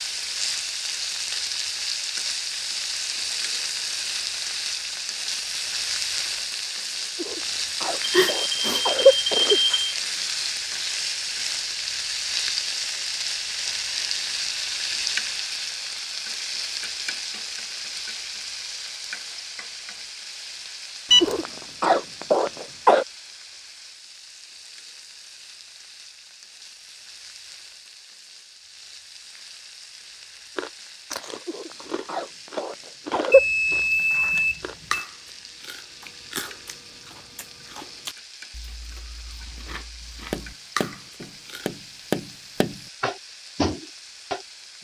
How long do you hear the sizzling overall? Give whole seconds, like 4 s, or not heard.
45 s.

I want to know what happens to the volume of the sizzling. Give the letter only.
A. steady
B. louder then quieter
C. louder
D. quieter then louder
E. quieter
E.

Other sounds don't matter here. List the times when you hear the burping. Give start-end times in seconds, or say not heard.
not heard.